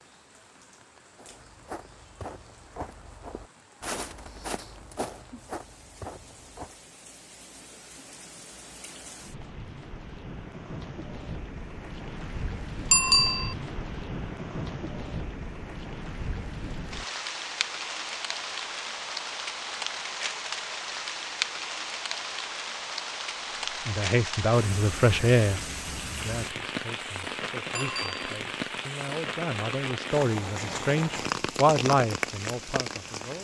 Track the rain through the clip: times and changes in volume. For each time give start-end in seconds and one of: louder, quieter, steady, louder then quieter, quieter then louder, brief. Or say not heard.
0.0-33.4 louder.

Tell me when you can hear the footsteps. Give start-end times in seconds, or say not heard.
1.1-6.8.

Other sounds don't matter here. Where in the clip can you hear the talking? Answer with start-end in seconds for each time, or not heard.
23.7-33.4.